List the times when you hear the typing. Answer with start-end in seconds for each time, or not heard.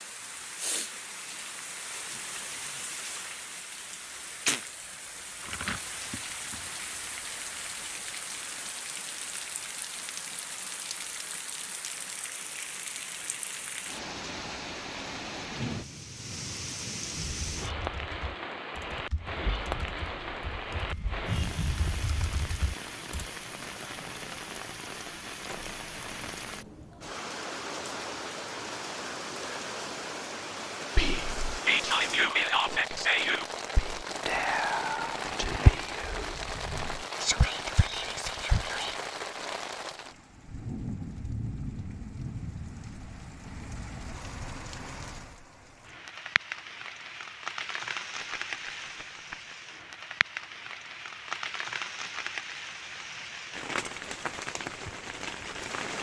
17.1-23.3.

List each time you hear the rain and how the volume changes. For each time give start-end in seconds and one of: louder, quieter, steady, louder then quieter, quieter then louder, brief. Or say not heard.
0.0-55.9 steady.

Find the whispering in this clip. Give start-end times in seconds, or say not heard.
30.9-39.0.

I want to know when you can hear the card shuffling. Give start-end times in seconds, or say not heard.
5.4-6.8, 34.0-35.8, 48.2-49.5.